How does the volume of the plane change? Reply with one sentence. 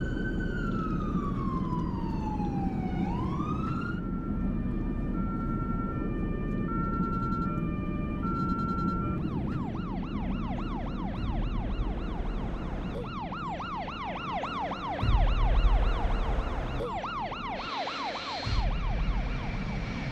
The volume of the plane goes down.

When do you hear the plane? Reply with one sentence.
The plane can be heard from 0.0 to 20.0 s.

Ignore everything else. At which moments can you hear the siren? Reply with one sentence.
You can hear the siren from 0.0 to 20.0 s.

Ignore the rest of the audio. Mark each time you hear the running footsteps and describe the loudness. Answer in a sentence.
You can't hear the running footsteps here.